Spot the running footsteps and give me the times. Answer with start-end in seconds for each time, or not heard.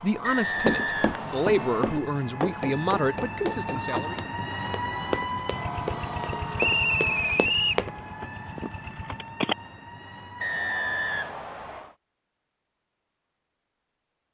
0.6-8.0.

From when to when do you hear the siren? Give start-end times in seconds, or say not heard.
0.0-11.4.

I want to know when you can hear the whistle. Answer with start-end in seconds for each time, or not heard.
0.2-1.9, 6.5-7.8, 10.4-11.9.